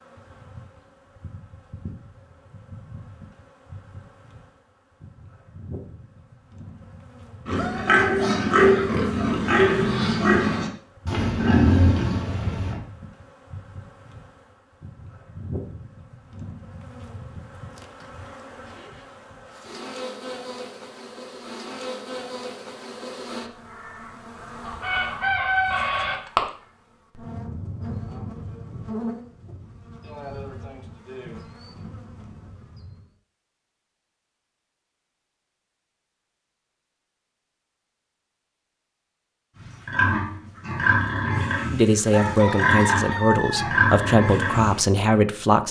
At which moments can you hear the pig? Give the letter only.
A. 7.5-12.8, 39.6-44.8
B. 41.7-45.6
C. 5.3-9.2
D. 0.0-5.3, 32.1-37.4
A.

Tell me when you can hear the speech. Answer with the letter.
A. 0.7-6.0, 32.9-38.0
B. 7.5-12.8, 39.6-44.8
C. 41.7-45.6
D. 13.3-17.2
C.